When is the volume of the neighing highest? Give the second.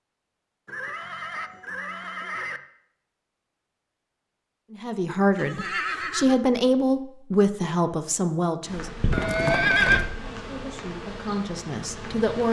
10 s.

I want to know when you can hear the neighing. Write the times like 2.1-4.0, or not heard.
0.7-2.6, 5.3-6.3, 9.1-10.1.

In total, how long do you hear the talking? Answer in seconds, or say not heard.
6 s.